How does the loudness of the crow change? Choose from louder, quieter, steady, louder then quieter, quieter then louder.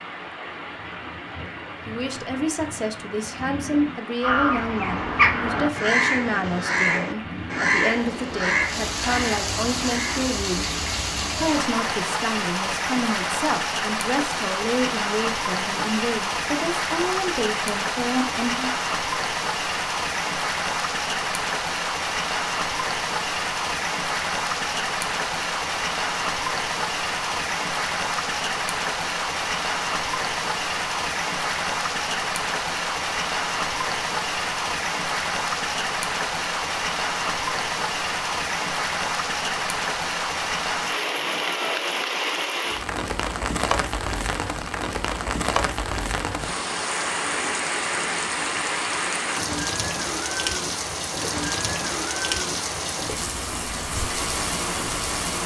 quieter.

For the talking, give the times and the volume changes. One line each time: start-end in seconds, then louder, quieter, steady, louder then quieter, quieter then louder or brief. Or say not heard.
1.9-18.7 steady.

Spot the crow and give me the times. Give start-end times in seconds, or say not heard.
4.2-10.3.